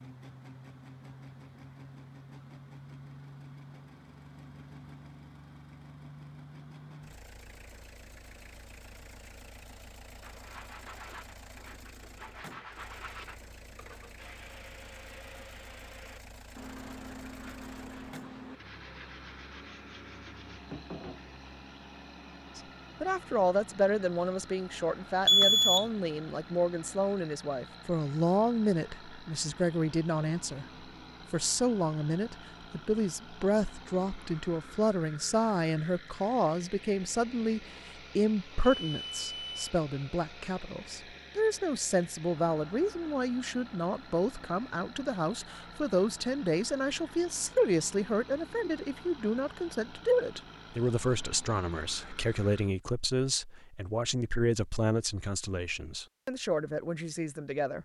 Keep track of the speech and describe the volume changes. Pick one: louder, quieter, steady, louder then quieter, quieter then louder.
steady.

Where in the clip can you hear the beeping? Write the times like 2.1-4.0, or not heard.
25.2-25.9, 38.6-39.6.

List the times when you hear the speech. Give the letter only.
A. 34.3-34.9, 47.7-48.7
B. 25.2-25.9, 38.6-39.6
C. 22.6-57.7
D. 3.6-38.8
C.